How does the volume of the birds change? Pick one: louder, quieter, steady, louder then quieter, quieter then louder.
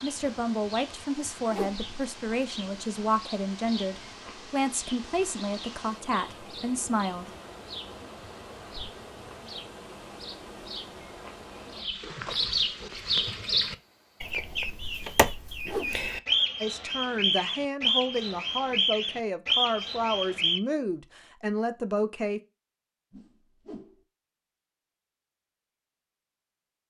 louder.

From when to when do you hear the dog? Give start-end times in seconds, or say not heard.
not heard.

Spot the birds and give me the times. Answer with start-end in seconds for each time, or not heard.
0.0-20.6.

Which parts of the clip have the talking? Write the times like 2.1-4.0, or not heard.
0.0-7.2, 16.6-22.4.